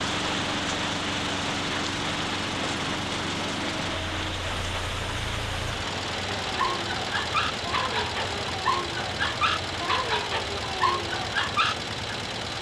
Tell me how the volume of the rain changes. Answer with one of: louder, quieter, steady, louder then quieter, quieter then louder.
quieter.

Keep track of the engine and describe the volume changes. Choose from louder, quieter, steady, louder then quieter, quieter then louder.
steady.